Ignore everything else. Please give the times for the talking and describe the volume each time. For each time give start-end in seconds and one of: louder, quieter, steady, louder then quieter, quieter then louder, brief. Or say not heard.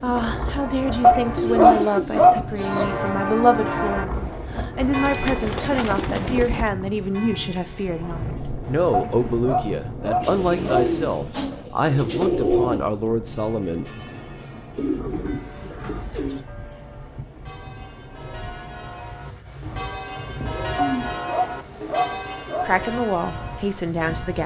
0.0-13.9 steady
22.6-24.4 brief.